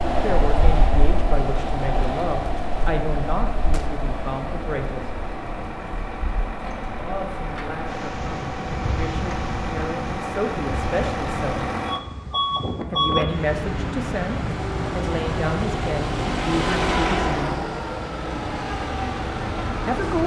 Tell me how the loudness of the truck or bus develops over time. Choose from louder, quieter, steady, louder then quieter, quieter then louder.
louder.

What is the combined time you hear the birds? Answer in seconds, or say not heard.
not heard.